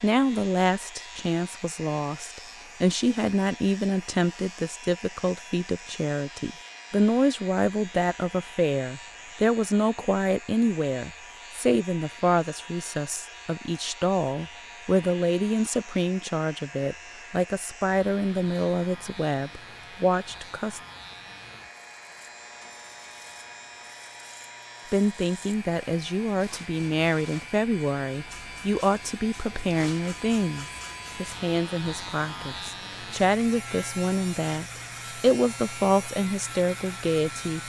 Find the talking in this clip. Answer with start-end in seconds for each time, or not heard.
0.0-20.8, 24.9-37.6.